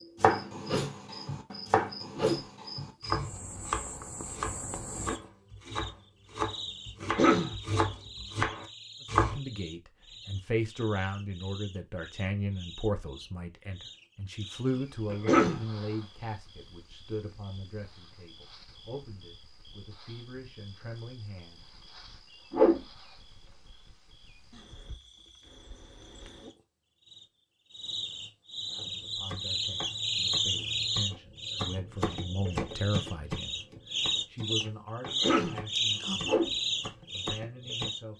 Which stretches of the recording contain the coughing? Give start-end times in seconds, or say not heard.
7.0-7.5, 15.1-15.7, 35.0-35.6.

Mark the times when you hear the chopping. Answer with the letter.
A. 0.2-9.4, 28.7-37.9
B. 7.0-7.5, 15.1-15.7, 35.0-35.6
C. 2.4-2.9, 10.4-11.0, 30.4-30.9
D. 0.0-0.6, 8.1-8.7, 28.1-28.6
A.